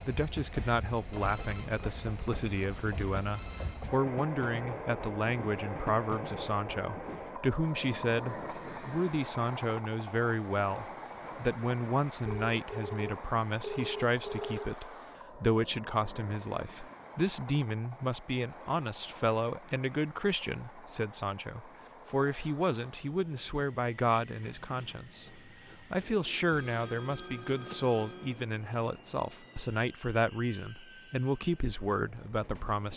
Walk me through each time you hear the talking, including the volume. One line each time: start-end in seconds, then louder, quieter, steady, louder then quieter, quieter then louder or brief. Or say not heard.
0.1-32.9 steady.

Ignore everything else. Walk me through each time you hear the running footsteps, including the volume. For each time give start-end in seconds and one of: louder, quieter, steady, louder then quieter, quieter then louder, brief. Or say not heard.
not heard.